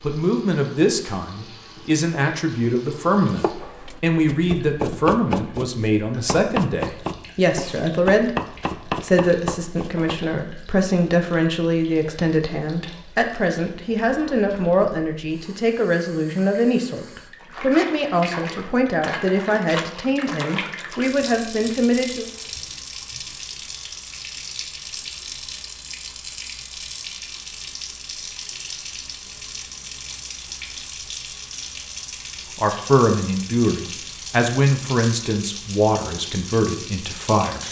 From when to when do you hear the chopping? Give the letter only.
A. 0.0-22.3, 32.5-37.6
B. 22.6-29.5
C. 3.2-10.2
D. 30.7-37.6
C.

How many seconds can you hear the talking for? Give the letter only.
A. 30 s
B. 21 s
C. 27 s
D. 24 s
C.